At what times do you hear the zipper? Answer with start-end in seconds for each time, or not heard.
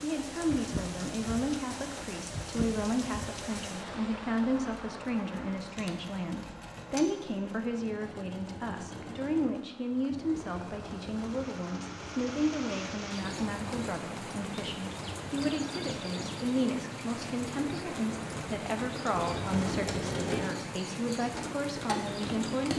not heard.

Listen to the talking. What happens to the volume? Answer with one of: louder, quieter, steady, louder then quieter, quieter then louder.
steady.